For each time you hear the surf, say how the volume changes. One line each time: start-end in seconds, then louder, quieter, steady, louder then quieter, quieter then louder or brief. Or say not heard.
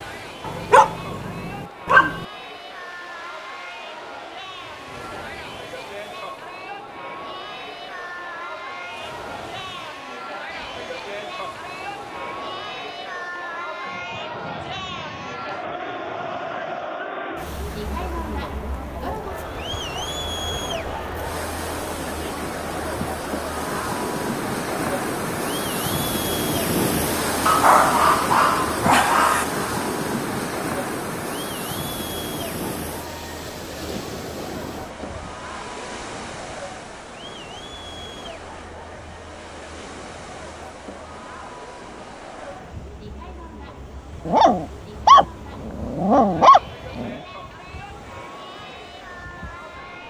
0.0-50.0 louder then quieter.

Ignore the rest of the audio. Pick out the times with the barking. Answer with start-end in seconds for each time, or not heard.
0.5-2.2, 27.4-29.4, 44.2-47.1.